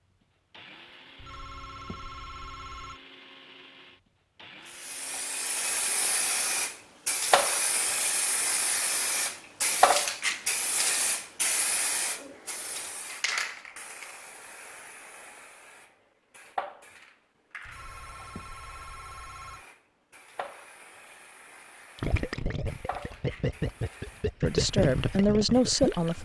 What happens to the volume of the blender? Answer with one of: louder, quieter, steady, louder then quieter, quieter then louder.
steady.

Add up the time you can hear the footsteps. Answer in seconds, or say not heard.
not heard.